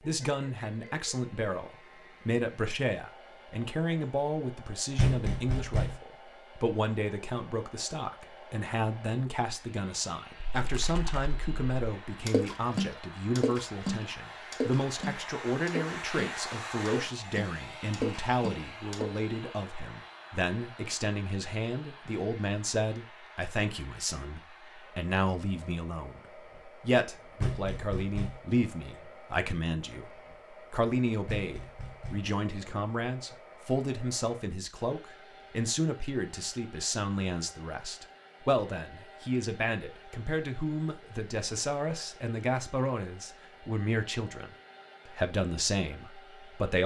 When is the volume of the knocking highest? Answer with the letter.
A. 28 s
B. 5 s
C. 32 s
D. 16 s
B.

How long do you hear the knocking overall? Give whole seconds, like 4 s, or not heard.
3 s.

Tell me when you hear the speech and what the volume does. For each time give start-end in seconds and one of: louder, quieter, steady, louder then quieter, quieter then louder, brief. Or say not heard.
0.0-46.8 steady.